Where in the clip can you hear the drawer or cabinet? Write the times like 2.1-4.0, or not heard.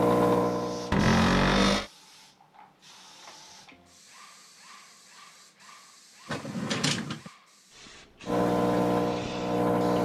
0.9-1.9, 6.2-7.3.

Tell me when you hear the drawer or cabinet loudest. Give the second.
1 s.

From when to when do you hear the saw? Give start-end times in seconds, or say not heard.
not heard.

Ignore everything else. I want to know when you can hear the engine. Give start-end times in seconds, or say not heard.
0.0-1.8, 8.2-9.9.